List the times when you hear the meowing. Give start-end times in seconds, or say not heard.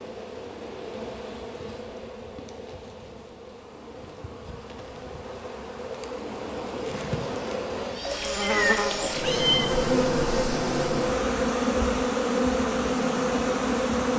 8.4-9.7.